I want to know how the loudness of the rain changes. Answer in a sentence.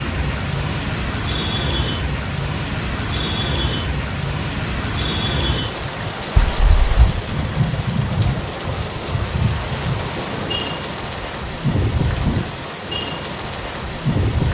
The loudness of the rain stays about the same.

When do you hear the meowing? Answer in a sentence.
You can hear the meowing from 6.3 to 7.2 s.